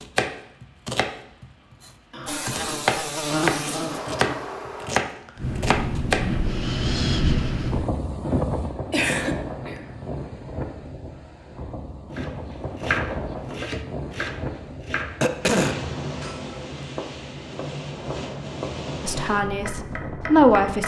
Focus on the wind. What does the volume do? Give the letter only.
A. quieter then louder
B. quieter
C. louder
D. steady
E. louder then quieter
B.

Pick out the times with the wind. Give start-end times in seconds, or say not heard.
5.3-20.8.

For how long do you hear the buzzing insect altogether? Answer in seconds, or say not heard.
3 s.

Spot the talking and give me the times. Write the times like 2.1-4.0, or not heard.
19.0-20.8.